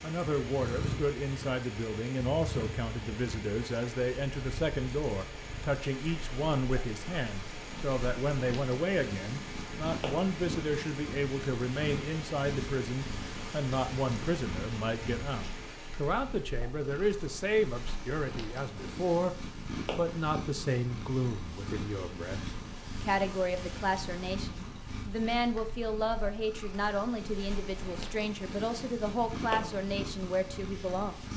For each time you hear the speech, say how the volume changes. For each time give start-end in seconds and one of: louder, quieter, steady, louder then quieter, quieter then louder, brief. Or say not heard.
0.0-19.4 steady
19.9-31.3 steady.